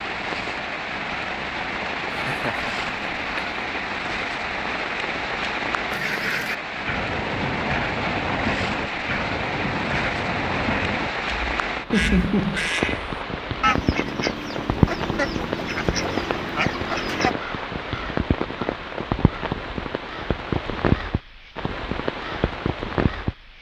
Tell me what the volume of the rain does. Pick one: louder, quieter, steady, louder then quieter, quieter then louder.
steady.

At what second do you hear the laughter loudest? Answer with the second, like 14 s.
12 s.